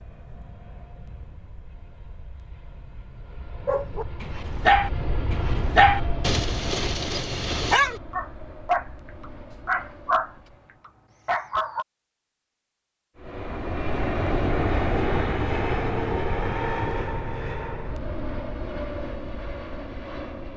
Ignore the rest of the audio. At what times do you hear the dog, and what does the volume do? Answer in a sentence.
You can hear the dog from 3.6 to 11.8 s, at a steady volume.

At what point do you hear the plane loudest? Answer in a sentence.
The volume of the plane peaks at 15 seconds.